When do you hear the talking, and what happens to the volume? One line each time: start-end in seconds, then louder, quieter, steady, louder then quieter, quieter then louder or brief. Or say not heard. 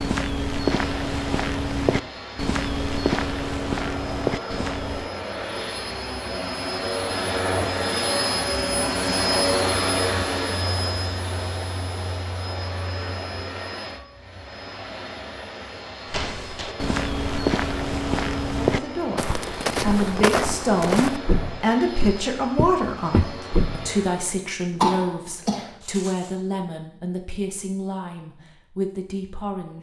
18.6-29.7 quieter.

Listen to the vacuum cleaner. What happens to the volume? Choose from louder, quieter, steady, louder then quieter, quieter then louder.
louder then quieter.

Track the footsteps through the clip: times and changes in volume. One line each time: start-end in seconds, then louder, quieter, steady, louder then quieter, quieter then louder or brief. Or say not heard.
0.0-5.1 steady
16.1-23.9 steady.